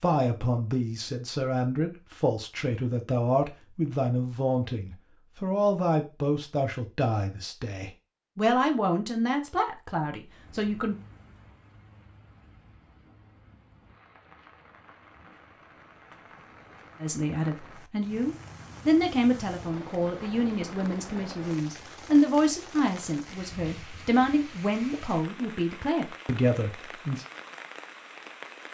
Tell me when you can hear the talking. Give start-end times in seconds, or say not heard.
0.0-10.9, 17.0-27.2.